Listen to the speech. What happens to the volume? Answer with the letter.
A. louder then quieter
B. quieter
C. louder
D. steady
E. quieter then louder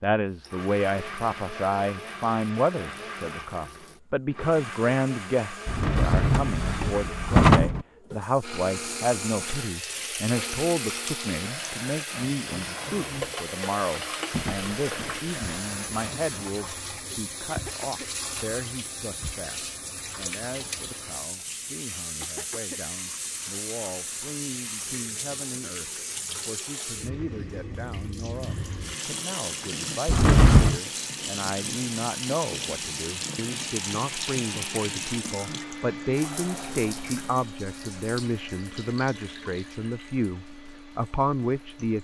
E.